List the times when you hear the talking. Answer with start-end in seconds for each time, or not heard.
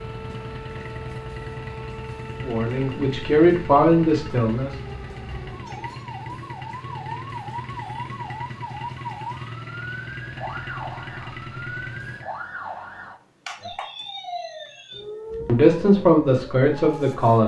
2.4-4.8, 15.4-17.4.